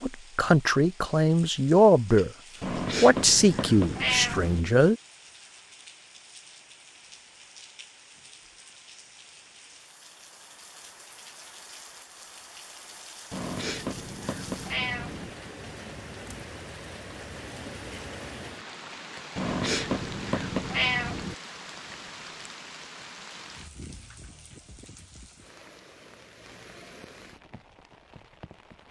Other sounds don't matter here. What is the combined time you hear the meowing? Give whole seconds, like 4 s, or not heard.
6 s.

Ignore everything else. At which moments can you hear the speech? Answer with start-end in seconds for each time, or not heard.
0.0-2.3, 3.0-5.0.